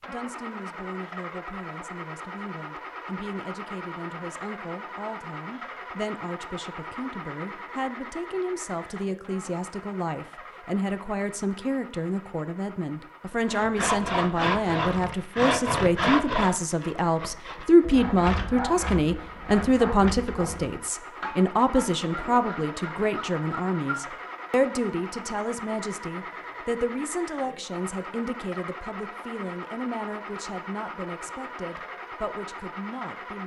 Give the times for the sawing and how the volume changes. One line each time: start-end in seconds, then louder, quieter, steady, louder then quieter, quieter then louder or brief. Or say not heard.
13.4-24.2 quieter.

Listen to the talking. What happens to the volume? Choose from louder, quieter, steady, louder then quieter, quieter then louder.
louder then quieter.